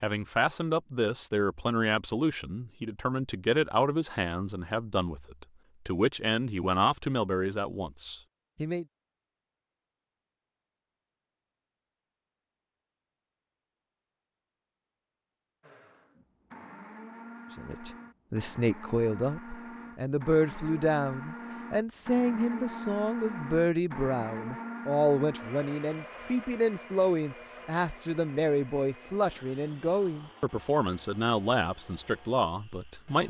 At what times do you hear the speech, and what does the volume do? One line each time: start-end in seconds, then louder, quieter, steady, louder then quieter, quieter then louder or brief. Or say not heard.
0.0-8.8 steady
17.6-33.2 steady.